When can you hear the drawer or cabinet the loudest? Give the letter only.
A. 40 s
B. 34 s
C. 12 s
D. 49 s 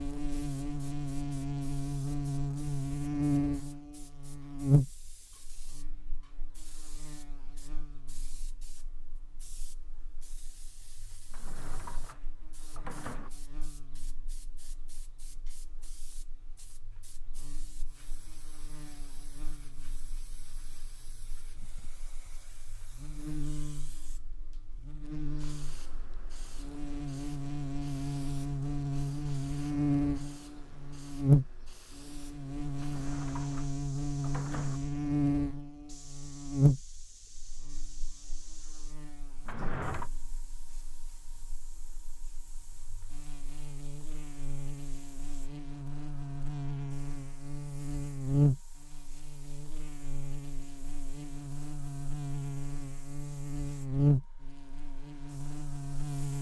A.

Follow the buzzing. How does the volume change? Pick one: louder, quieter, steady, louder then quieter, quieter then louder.
quieter then louder.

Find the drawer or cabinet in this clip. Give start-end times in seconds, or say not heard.
11.3-13.3, 32.8-34.8, 39.5-40.1.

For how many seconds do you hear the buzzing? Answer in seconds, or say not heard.
56 s.